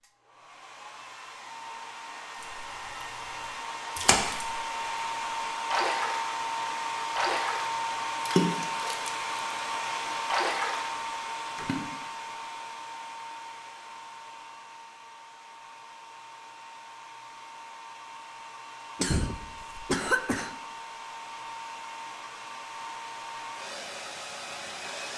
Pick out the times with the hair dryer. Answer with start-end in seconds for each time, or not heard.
0.0-25.1.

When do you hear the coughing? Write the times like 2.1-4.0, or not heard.
18.9-20.5.